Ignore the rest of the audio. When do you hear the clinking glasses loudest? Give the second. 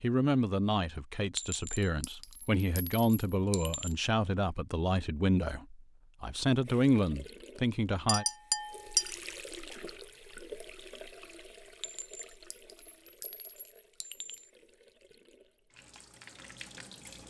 9 s.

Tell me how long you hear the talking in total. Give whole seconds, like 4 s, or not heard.
8 s.